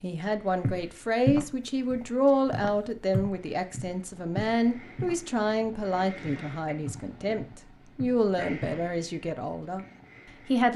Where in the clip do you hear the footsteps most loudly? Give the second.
1 s.